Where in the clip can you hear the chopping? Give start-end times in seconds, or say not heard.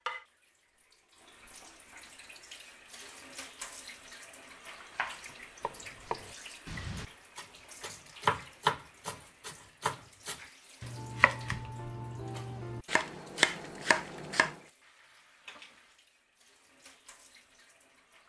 4.9-14.6.